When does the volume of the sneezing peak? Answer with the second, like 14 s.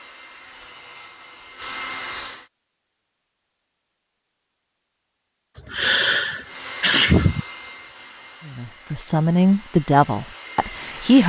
7 s.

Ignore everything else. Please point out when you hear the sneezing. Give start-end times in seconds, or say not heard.
5.5-7.4.